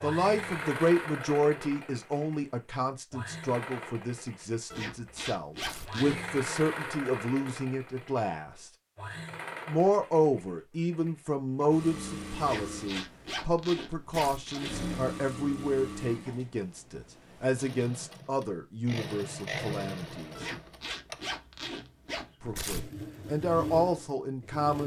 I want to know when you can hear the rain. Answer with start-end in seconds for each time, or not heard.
not heard.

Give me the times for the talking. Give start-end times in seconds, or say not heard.
0.0-8.7, 9.7-20.4, 22.4-24.8.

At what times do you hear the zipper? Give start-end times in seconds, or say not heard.
4.7-6.2, 12.4-14.8, 20.4-22.4.